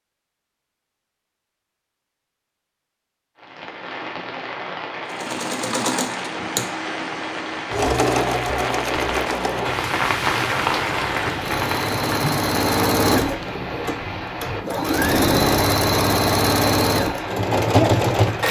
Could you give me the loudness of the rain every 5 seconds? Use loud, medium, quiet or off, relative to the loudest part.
medium, loud, loud, medium.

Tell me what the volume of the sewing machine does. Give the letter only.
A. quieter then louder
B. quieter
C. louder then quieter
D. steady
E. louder
E.